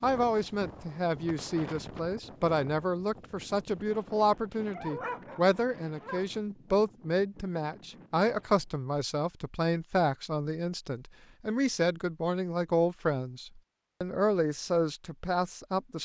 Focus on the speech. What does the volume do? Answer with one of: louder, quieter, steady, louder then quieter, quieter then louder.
steady.